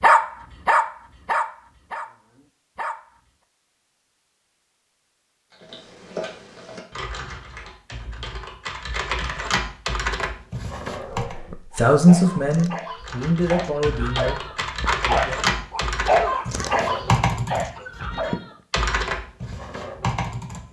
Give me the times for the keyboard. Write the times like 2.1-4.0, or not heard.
5.5-11.3, 13.0-20.6.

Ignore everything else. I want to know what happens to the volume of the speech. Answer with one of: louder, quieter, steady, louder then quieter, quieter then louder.
quieter.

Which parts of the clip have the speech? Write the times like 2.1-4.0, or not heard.
11.3-15.7.